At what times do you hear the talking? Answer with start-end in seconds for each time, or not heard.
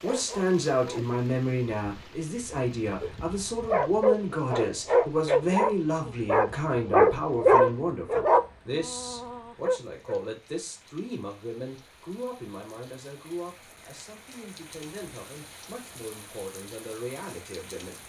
0.0-17.9.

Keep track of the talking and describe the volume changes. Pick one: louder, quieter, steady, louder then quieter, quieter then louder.
quieter.